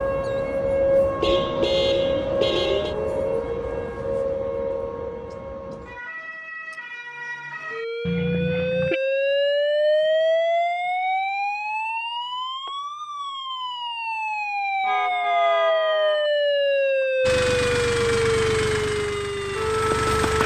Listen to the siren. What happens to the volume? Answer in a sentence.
The volume of the siren goes down, then up.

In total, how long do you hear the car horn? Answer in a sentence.
The car horn can be heard for 4 seconds in total.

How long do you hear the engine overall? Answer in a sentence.
You can hear the engine for 3 seconds altogether.